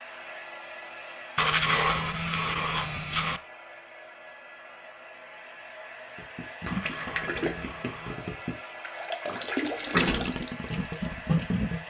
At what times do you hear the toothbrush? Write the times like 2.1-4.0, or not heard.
1.4-3.4, 6.7-8.2.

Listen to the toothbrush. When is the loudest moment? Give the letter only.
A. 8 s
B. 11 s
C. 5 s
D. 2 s
D.